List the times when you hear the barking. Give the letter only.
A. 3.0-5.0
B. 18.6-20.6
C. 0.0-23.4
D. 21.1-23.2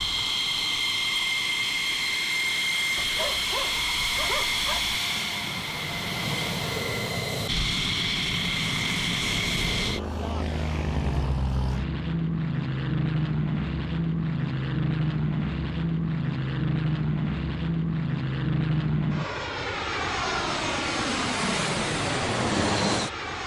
A.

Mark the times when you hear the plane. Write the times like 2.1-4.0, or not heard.
0.0-23.4.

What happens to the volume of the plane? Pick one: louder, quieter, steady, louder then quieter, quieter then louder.
steady.